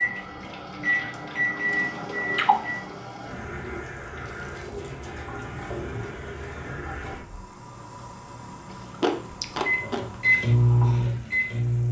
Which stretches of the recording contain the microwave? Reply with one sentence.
You can hear the microwave from 0.0 to 2.9 s and from 9.6 to 11.8 s.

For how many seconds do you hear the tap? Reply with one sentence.
The tap can be heard for 12 seconds in total.